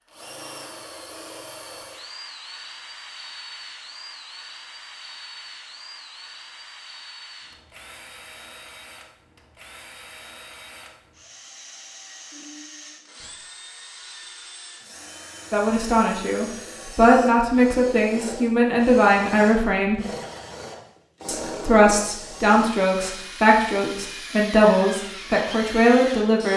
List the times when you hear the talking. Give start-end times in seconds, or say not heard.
15.5-20.0, 21.2-26.5.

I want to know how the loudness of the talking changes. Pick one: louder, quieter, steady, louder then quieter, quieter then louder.
steady.